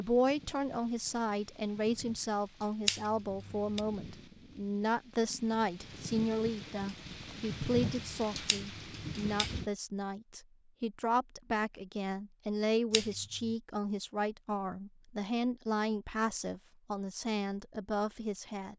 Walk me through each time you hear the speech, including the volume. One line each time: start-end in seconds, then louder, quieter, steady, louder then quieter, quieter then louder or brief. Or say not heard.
0.0-18.7 steady.